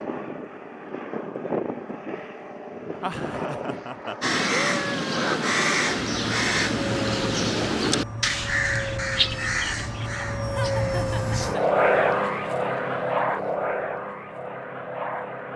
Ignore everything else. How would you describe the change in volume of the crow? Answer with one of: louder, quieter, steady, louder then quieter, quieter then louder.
quieter.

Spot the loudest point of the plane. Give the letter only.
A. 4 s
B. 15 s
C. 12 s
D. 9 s
C.